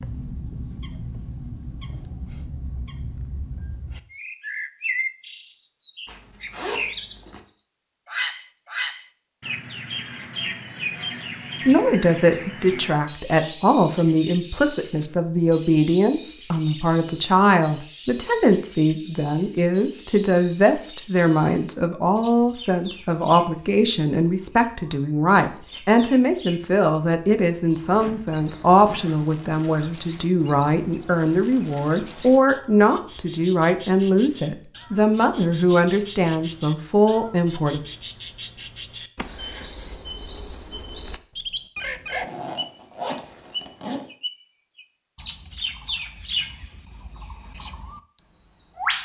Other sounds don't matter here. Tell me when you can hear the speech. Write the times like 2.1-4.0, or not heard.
11.7-37.8.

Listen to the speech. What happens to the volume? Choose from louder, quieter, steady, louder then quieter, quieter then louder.
steady.